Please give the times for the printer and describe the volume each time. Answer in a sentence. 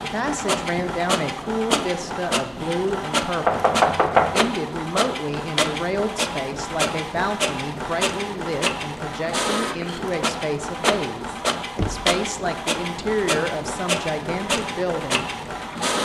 You can hear the printer from 0.0 to 16.0 s, at a steady volume.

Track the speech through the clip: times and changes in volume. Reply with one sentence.
You can hear the speech from 0.0 to 15.2 s, at a steady volume.